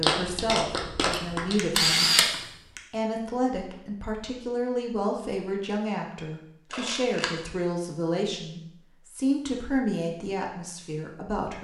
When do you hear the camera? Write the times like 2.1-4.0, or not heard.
1.1-2.8, 6.7-7.4.